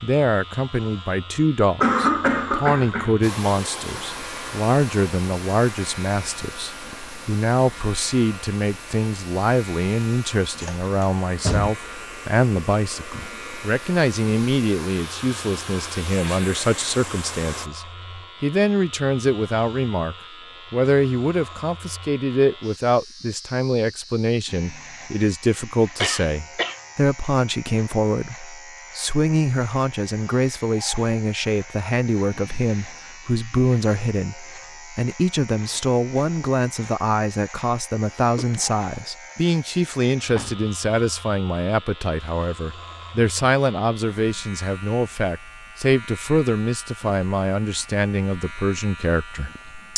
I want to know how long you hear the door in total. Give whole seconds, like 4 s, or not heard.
2 s.